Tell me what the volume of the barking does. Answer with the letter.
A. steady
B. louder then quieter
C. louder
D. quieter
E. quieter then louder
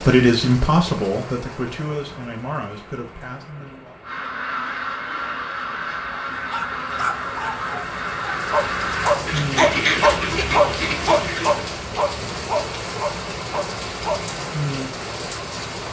B.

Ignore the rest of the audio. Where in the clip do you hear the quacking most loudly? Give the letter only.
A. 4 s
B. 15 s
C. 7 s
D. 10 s
D.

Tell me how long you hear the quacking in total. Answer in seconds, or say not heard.
8 s.